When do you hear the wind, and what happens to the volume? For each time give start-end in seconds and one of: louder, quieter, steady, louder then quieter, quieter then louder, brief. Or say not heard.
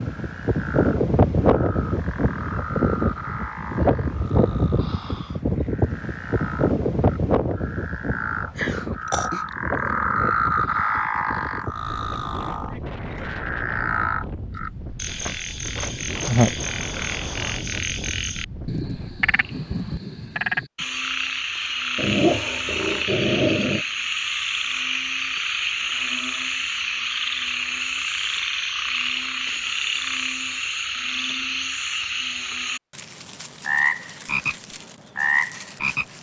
0.0-20.6 quieter.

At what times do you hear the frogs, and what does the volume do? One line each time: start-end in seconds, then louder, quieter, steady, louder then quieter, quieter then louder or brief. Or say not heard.
0.0-36.1 louder.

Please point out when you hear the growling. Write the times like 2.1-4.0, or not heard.
8.6-10.4, 21.9-23.9.